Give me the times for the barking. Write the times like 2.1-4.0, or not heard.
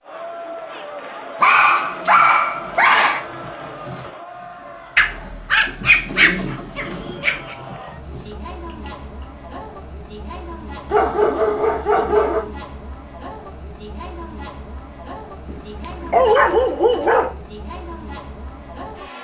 1.4-3.2, 5.0-7.5, 10.9-12.4, 15.5-17.3.